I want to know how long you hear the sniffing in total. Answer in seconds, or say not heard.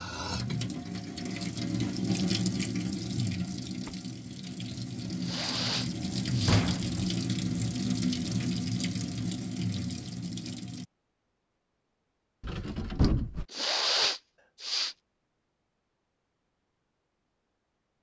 3 s.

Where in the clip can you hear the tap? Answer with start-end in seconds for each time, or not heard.
0.0-10.8.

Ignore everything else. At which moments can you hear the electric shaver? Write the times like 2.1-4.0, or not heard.
not heard.